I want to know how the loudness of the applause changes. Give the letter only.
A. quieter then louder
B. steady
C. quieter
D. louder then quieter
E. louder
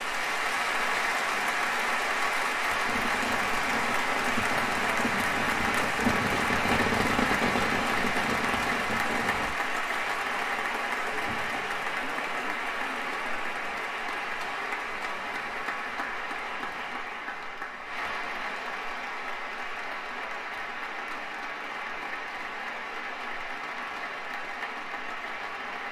C.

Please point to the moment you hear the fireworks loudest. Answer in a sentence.
The loudest moment of the fireworks is at 7 seconds.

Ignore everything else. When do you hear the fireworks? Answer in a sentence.
You can hear the fireworks from 2.9 to 9.5 s.